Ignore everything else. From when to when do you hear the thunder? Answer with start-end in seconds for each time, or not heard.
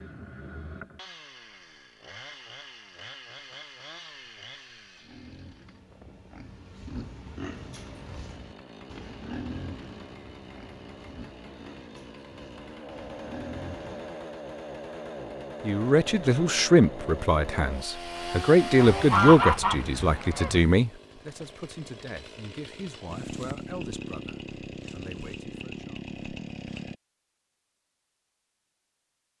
not heard.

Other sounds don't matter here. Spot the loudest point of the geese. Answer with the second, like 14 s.
19 s.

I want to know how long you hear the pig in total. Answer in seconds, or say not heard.
9 s.